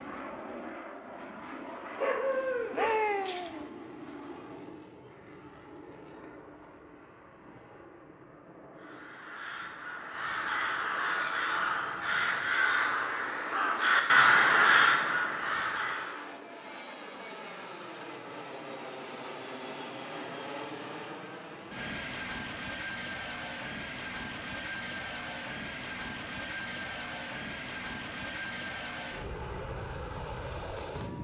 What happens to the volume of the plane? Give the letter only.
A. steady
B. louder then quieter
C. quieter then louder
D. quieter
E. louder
C.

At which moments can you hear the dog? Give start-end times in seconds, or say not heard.
1.9-3.7.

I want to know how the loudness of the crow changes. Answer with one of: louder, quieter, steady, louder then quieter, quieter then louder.
louder.